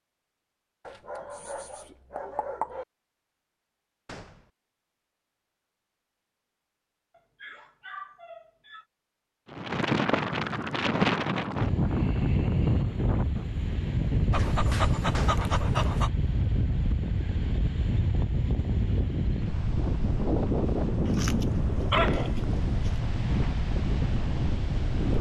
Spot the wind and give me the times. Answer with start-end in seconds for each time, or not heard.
9.5-25.1.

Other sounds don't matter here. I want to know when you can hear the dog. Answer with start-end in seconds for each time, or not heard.
0.8-2.9, 7.1-8.8, 14.3-16.1, 21.1-22.9.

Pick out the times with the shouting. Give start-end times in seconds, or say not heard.
not heard.